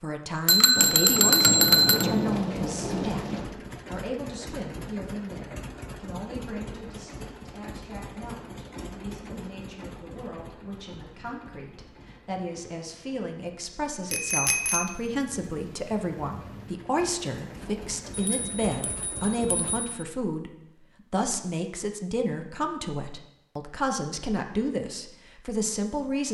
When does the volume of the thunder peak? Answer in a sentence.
The volume of the thunder peaks at 2 seconds.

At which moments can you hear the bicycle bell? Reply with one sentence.
You can hear the bicycle bell from 0.5 to 2.0 s, from 14.1 to 14.9 s and from 18.1 to 19.9 s.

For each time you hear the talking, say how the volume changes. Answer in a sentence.
You can hear the talking from 0.0 to 26.2 s, getting quieter then louder.